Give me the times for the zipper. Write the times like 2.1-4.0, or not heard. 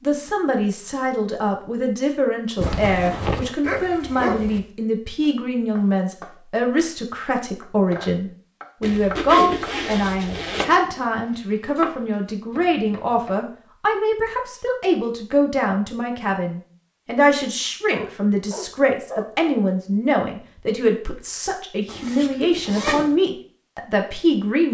2.5-3.5, 8.8-10.7, 21.9-23.1.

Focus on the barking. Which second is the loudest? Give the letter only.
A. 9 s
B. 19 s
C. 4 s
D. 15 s
C.